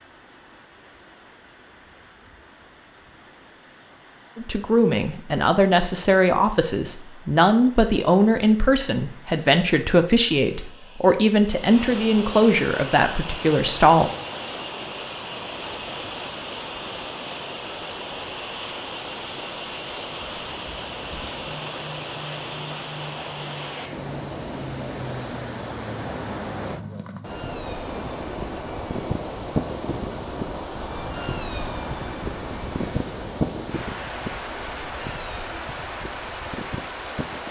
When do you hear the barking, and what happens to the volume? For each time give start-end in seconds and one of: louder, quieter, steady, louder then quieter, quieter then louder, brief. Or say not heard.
not heard.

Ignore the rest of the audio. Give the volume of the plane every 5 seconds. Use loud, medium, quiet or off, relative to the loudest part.
off, off, off, off, medium, loud, loud, medium.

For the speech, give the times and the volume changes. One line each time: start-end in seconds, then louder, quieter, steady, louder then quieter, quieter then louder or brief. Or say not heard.
4.3-14.1 steady.